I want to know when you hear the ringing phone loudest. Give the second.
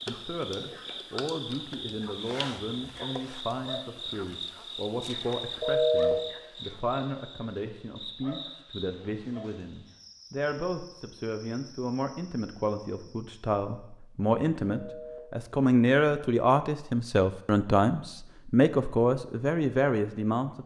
6 s.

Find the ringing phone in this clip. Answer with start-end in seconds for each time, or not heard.
5.6-6.2, 14.7-15.2.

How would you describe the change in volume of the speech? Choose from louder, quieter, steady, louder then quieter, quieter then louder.
louder.